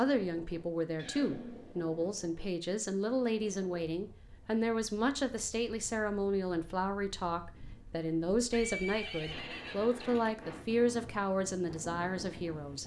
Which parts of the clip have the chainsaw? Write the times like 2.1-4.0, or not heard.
not heard.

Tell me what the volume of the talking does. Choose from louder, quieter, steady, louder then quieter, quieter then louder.
steady.